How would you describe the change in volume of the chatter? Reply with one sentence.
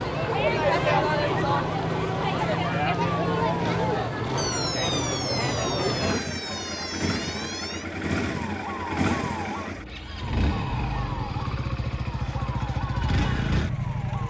The loudness of the chatter goes down.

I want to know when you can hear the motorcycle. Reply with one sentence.
You can hear the motorcycle from 0.0 to 14.2 s.